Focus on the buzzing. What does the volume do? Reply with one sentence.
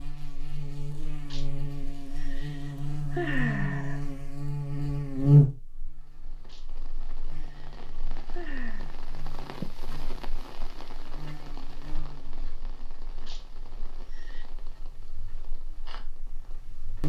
The loudness of the buzzing goes up, then down.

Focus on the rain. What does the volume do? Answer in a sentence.
The volume of the rain goes up, then down.